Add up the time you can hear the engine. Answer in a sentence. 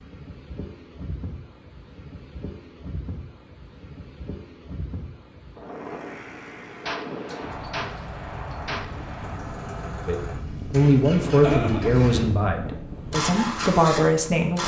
The engine can be heard for 9 seconds in total.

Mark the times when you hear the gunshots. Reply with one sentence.
The gunshots can be heard from 6.8 to 9.4 s.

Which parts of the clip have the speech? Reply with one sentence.
You can hear the speech from 10.1 to 14.6 s.